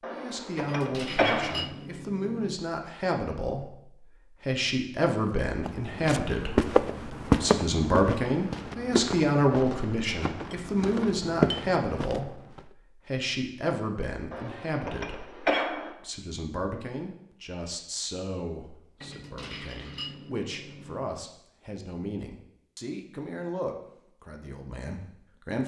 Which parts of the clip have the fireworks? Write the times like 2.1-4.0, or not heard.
not heard.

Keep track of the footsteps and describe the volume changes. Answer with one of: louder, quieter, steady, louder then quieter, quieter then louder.
quieter then louder.